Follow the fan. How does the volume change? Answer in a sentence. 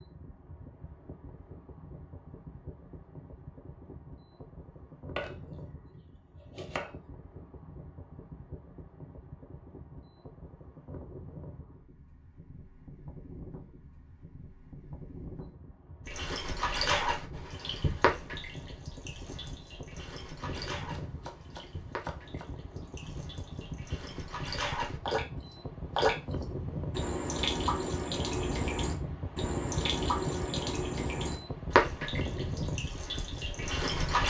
The loudness of the fan goes up.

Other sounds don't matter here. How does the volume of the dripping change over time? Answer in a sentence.
The volume of the dripping goes down, then up.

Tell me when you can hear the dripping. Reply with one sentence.
You can hear the dripping from 16.1 to 34.2 s.